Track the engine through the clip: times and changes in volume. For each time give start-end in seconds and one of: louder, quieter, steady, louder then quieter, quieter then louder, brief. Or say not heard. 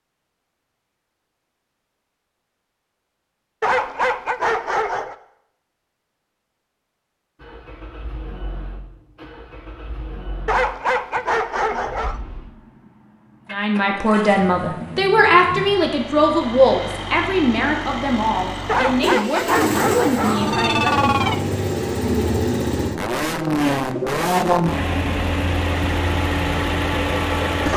7.3-27.7 louder.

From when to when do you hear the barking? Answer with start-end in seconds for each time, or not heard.
3.6-5.2, 10.4-12.2, 18.6-21.4.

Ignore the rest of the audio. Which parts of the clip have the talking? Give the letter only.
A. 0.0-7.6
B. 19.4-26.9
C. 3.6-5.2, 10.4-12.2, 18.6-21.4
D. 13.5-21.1
D.